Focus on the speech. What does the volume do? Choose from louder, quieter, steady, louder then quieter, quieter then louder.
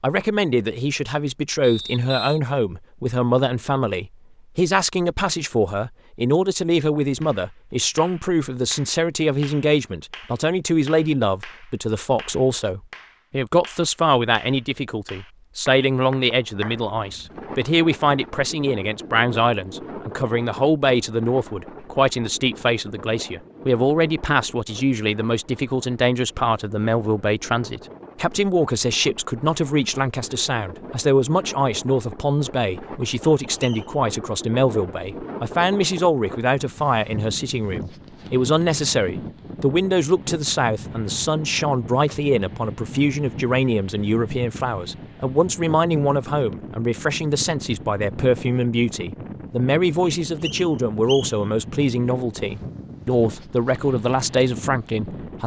steady.